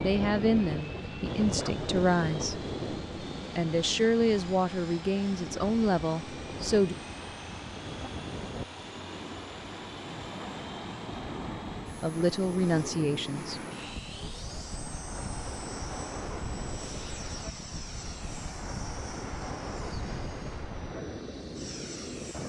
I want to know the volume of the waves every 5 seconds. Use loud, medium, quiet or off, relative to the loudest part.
loud, medium, loud, loud, loud.